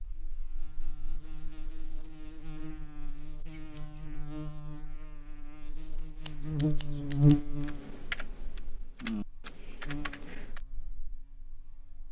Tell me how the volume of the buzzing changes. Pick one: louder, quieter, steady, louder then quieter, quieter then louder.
louder then quieter.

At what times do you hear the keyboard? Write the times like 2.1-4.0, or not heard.
7.7-10.6.